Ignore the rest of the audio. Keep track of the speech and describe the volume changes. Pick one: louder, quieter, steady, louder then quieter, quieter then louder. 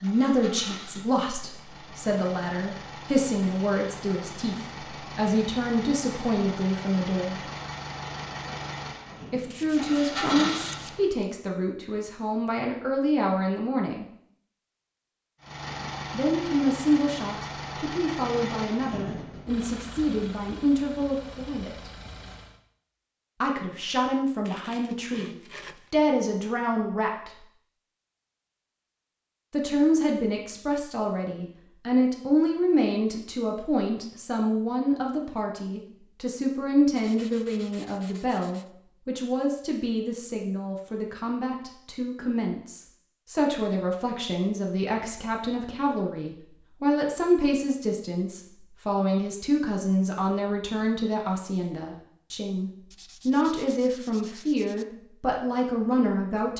steady.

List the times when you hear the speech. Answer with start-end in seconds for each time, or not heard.
0.0-7.5, 9.3-14.1, 16.1-21.9, 23.4-27.4, 29.5-56.5.